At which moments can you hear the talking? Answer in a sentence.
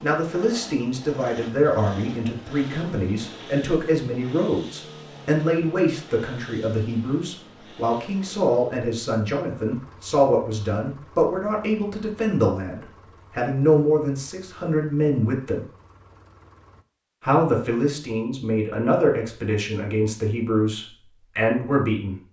The talking can be heard from 0.0 to 15.7 s and from 17.2 to 22.1 s.